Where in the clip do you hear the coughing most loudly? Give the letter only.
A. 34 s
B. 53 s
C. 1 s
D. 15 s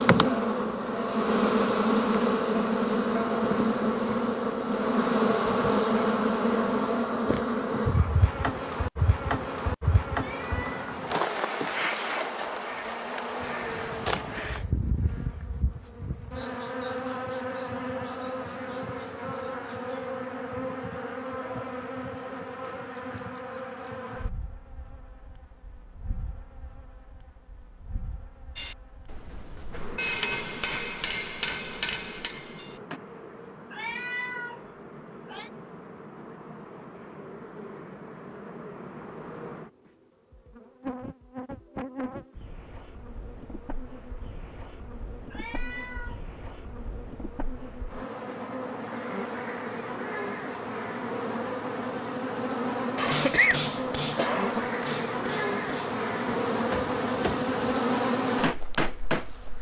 B.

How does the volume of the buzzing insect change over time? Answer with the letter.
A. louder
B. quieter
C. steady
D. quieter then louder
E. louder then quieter
D.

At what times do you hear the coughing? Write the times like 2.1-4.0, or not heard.
14.1-14.6, 53.0-54.6.